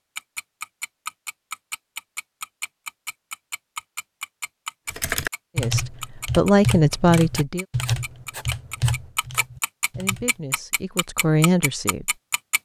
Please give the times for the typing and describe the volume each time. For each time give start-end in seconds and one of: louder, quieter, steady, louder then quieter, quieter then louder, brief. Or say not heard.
4.8-10.4 quieter.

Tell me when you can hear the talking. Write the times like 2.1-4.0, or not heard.
5.5-7.7, 9.9-12.2.